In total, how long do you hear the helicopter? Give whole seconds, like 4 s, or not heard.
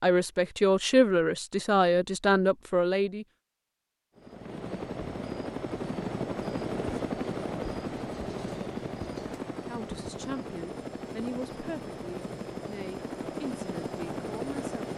11 s.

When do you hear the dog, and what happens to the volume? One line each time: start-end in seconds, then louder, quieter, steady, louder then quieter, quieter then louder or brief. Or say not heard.
not heard.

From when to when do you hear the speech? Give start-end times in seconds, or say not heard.
0.0-3.2, 9.7-14.9.